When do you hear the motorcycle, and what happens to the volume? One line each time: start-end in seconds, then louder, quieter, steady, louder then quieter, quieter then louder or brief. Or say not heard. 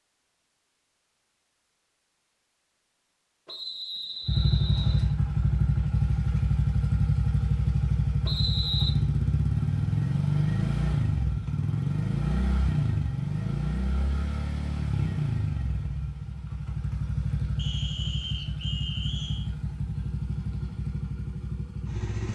4.2-22.3 quieter.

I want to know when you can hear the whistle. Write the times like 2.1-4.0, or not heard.
3.5-5.2, 8.2-8.9, 17.6-19.5.